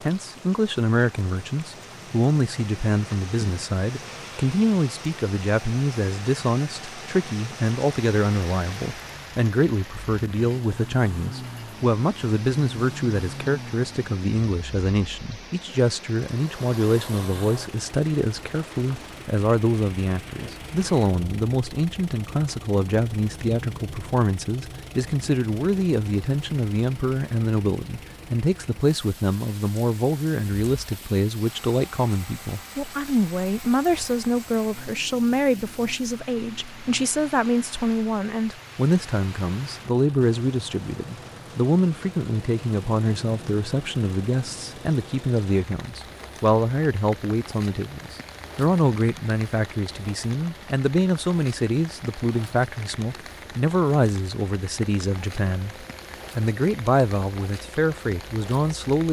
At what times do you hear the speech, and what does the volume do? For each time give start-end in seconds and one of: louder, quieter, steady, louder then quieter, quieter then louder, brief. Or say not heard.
0.0-59.0 steady.